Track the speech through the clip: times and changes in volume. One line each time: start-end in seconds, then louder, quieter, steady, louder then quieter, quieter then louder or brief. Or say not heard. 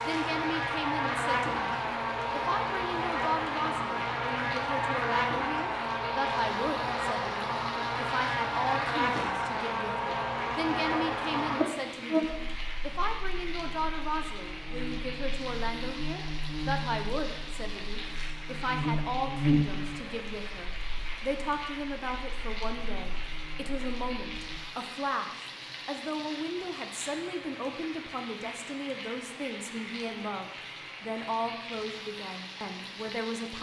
0.0-33.5 steady.